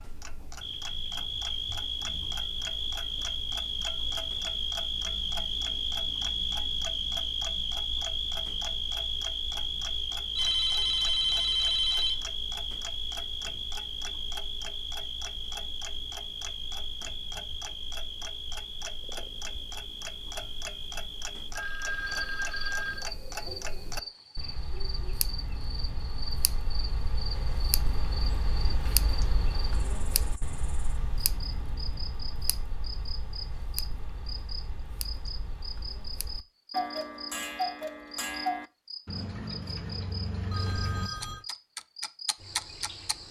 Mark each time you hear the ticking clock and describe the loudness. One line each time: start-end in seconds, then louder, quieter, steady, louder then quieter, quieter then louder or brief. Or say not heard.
0.0-43.1 louder.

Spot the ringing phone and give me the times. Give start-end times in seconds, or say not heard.
10.3-12.2, 21.5-23.1, 40.5-41.5.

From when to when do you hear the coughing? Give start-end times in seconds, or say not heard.
not heard.